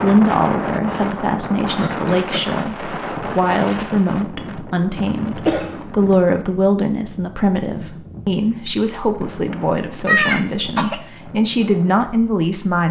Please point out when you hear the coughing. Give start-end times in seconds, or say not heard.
1.4-2.5, 5.5-6.0, 10.1-11.0.